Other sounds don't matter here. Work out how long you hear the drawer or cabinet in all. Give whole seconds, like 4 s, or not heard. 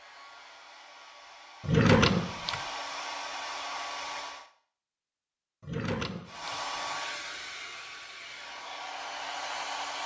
2 s.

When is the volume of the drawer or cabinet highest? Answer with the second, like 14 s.
2 s.